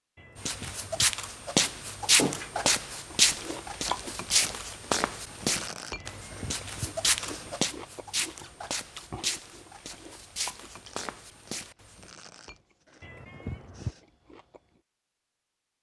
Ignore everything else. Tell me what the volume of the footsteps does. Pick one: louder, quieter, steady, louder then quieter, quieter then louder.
quieter.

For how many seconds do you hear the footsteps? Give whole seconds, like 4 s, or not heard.
12 s.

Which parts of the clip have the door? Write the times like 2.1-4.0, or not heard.
2.0-2.8.